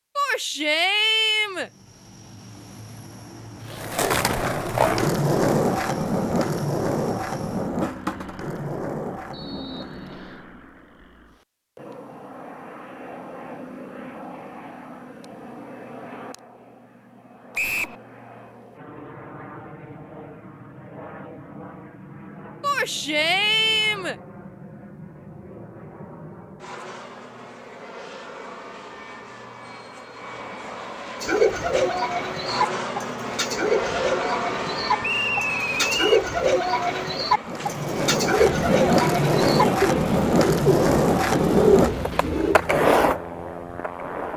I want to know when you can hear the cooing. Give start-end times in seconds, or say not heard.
31.2-42.6.